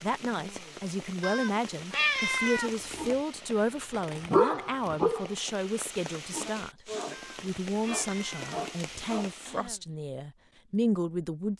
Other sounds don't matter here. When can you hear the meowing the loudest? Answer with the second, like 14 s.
2 s.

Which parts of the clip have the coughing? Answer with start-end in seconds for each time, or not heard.
9.4-9.8.